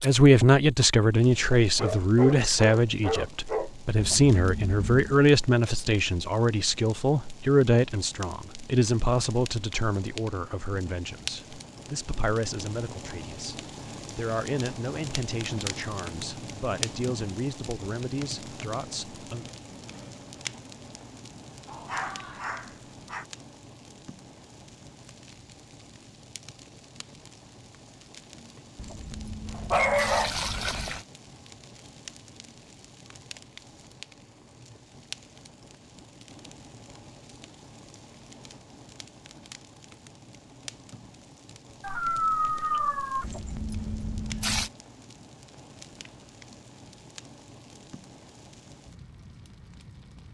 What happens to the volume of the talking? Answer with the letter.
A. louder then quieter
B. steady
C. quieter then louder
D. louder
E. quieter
E.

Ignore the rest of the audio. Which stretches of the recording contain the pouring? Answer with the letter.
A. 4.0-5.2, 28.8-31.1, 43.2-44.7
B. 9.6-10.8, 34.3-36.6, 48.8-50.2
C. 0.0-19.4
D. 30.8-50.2
A.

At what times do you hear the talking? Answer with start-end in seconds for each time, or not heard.
0.0-19.4.